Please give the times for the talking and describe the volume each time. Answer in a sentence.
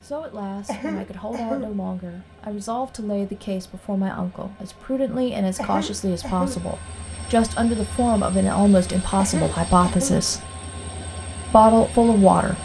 You can hear the talking from 0.0 to 10.5 s, getting louder; and briefly from 11.5 to 12.5 s.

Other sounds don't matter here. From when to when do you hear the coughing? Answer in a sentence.
You can hear the coughing from 0.7 to 1.8 s, from 5.5 to 6.7 s and from 9.2 to 10.2 s.